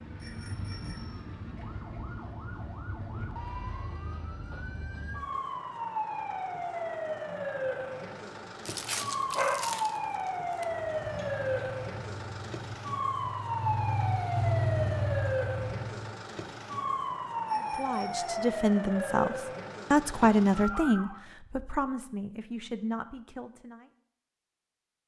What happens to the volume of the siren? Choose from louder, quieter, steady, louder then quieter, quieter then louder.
louder.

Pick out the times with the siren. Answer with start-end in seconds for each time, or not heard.
0.0-21.2.